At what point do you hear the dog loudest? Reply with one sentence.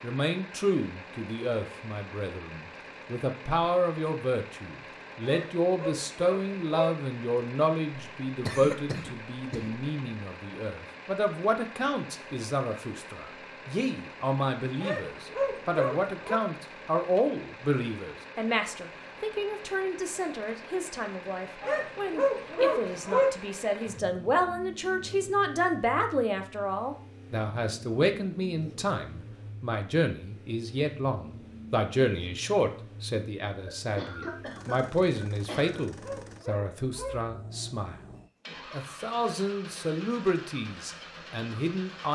The loudest moment of the dog is at 23 seconds.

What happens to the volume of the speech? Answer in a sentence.
The volume of the speech stays about the same.